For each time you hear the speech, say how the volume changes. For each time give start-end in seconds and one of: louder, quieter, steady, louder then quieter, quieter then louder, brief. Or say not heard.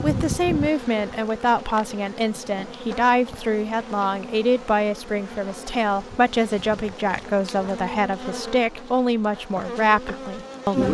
0.0-10.8 steady.